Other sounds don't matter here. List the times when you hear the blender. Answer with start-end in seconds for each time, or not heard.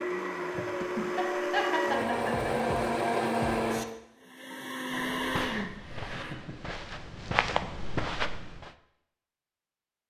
0.0-6.3.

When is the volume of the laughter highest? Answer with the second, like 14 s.
2 s.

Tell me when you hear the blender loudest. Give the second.
3 s.